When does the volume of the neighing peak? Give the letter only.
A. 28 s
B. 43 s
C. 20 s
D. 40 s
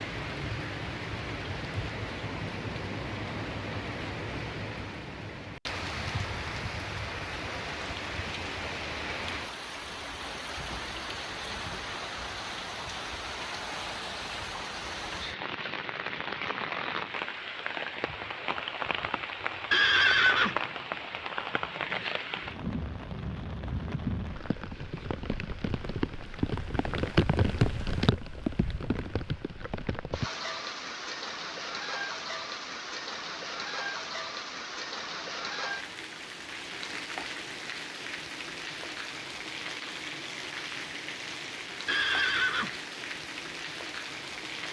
C.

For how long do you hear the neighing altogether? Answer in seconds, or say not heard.
2 s.